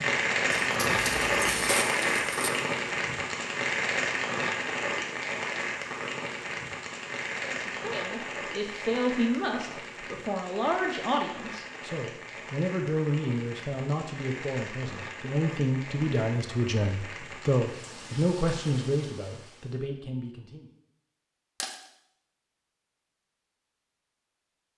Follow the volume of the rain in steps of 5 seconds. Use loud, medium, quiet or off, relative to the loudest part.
loud, medium, quiet, quiet, off.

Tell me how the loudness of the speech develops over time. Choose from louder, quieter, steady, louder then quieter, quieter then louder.
steady.